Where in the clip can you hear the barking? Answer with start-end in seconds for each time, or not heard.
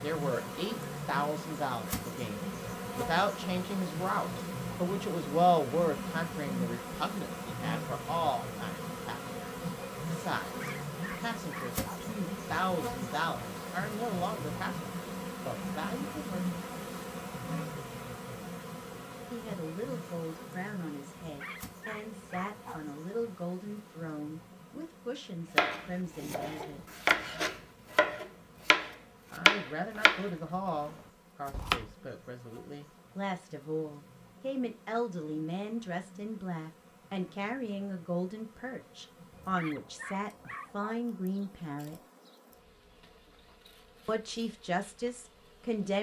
10.4-11.8, 21.2-22.8, 39.3-41.0.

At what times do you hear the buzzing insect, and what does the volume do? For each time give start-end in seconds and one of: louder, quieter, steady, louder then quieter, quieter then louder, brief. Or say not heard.
0.0-45.9 quieter.